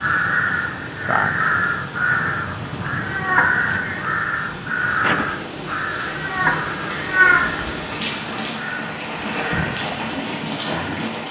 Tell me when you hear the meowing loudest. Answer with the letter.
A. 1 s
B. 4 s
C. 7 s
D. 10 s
C.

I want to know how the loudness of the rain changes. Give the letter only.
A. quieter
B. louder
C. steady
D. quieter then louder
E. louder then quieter
B.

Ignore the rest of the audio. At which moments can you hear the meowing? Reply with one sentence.
You can hear the meowing from 3.0 to 4.0 s and from 6.1 to 7.5 s.